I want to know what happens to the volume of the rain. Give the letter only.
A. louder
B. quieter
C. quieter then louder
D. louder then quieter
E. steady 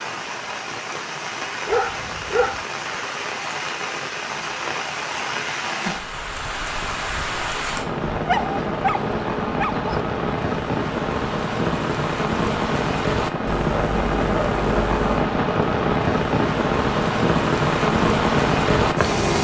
A.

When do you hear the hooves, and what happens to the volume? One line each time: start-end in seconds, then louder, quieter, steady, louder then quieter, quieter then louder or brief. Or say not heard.
not heard.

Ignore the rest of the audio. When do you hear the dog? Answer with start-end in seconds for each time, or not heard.
1.6-2.6, 8.1-9.9, 13.4-15.2.